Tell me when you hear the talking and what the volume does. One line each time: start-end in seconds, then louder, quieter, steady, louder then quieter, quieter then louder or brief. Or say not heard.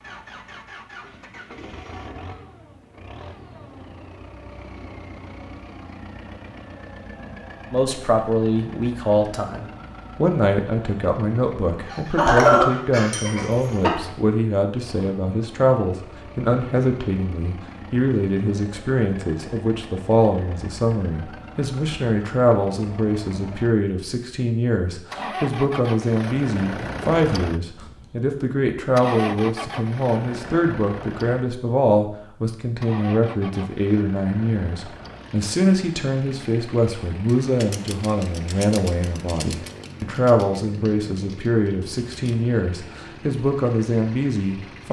7.7-44.8 steady.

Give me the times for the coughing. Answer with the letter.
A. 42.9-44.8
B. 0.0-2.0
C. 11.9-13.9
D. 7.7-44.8
C.